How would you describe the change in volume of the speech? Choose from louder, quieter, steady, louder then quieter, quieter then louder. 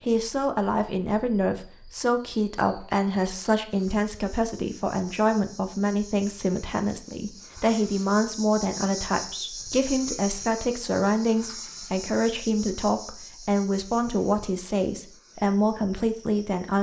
steady.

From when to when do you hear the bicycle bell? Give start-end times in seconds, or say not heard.
not heard.